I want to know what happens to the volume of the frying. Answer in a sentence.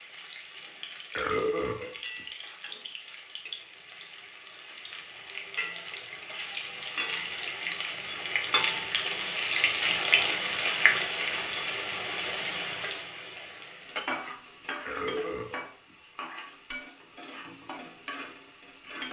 The loudness of the frying goes up, then down.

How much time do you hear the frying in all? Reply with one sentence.
You can hear the frying for 19 seconds altogether.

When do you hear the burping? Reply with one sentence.
You can hear the burping from 1.1 to 2.2 s and from 14.8 to 15.9 s.